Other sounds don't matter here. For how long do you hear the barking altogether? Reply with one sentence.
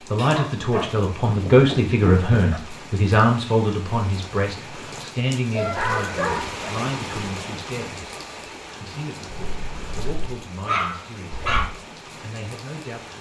The barking can be heard for 6 seconds in total.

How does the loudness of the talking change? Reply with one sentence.
The volume of the talking goes down.